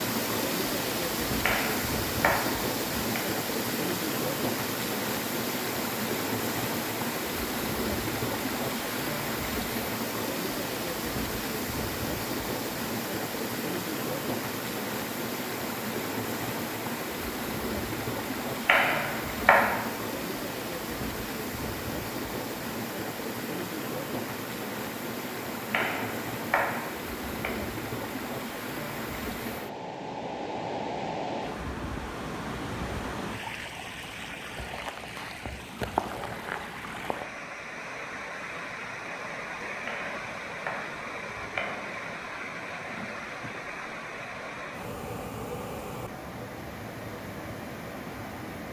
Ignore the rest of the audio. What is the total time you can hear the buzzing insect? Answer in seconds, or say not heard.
not heard.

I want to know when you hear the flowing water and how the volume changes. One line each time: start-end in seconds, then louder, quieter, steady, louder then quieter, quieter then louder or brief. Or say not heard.
0.0-48.6 quieter.